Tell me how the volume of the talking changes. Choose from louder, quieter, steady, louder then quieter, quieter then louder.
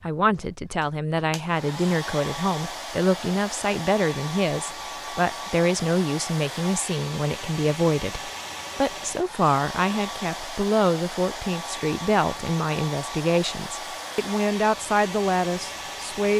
steady.